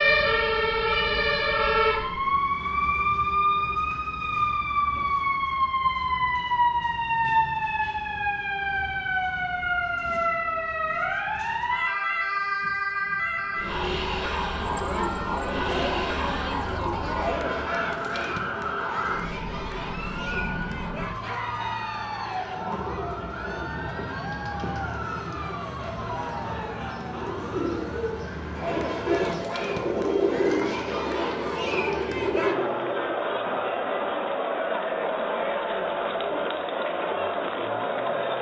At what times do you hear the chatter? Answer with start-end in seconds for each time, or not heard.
14.6-38.3.